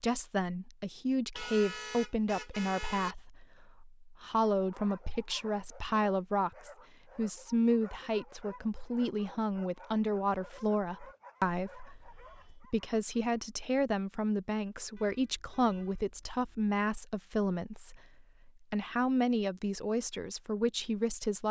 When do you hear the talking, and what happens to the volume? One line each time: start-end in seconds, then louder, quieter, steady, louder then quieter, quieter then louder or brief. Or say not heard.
0.0-21.4 steady.